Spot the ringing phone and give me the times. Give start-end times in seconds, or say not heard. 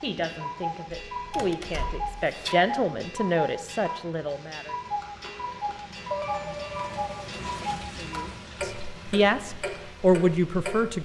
1.1-2.5, 6.1-7.3.